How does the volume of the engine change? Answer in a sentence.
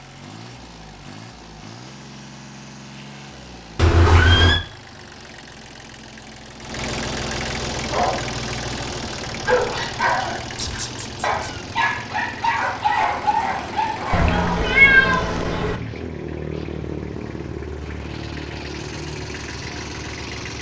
The volume of the engine goes up.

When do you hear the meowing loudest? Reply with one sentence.
The loudest moment of the meowing is at 15 seconds.